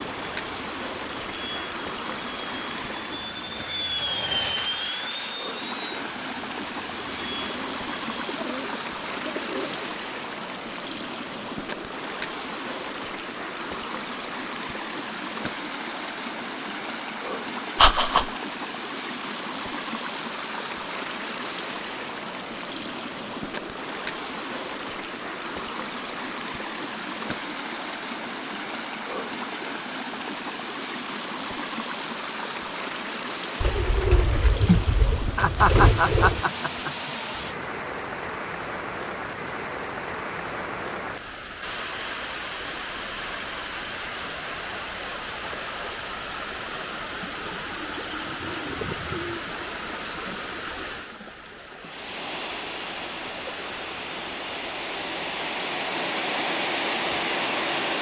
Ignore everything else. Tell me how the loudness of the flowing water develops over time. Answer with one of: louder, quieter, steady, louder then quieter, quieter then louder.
steady.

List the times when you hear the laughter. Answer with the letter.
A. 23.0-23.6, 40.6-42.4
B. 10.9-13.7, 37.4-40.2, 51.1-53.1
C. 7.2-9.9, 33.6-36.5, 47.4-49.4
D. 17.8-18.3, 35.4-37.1
D.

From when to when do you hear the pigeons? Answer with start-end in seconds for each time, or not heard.
7.2-9.9, 33.6-36.5, 47.4-49.4.